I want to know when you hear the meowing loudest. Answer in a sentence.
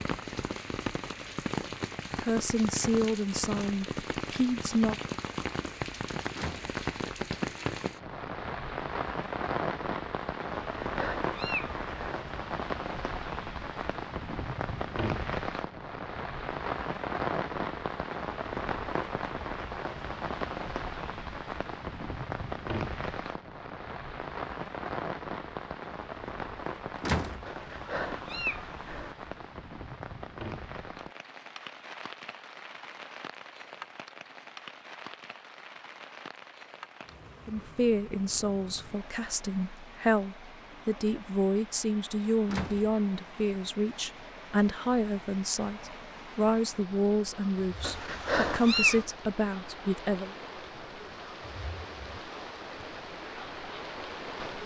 The loudest moment of the meowing is at 49 seconds.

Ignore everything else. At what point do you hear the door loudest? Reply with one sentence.
The volume of the door peaks at 27 seconds.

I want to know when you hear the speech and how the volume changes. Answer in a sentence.
The speech can be heard briefly from 2.2 to 5.0 s; and from 37.5 to 50.4 s, at a steady volume.